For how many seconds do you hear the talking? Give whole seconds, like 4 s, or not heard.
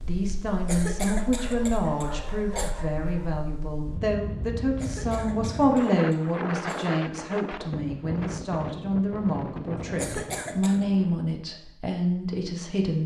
13 s.